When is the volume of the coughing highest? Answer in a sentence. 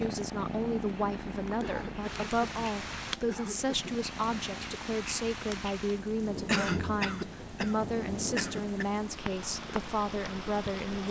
The volume of the coughing peaks at 7 seconds.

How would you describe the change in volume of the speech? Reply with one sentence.
The volume of the speech stays about the same.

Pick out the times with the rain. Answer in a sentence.
You can hear the rain from 0.0 to 11.0 s.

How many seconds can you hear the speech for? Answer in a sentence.
The speech can be heard for 11 seconds in total.